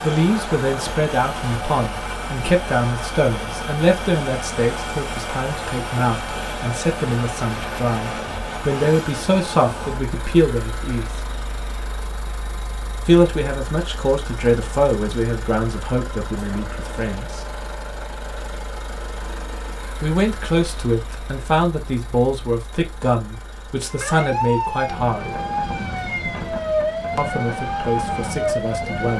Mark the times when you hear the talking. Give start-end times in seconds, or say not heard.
0.0-11.1, 13.1-17.4, 20.0-25.4, 27.1-29.1.